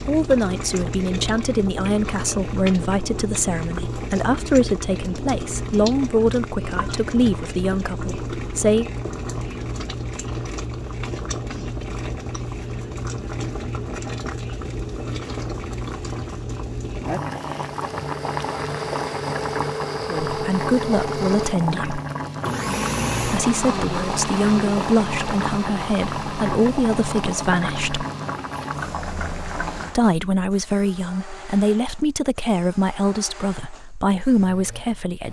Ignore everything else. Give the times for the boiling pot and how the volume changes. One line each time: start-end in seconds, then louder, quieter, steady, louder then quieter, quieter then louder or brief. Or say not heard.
0.0-29.9 steady.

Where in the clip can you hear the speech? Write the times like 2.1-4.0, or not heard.
0.1-8.8, 20.1-22.0, 23.2-28.1, 29.9-35.2.